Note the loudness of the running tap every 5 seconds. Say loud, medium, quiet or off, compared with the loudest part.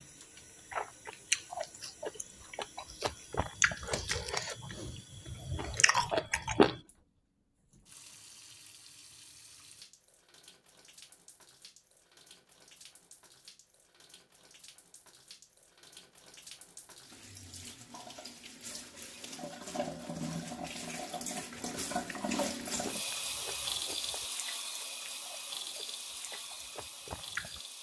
quiet, quiet, quiet, medium, loud, medium.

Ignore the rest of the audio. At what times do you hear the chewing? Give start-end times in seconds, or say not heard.
0.7-6.8, 21.6-27.6.